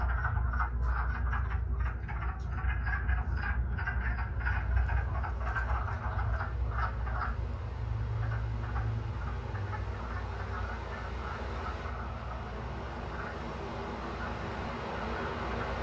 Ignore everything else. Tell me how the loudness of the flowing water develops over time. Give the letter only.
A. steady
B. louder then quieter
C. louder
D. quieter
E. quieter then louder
C.